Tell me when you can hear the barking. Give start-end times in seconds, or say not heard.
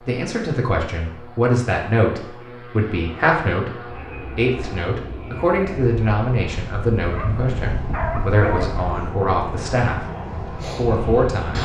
7.0-8.8.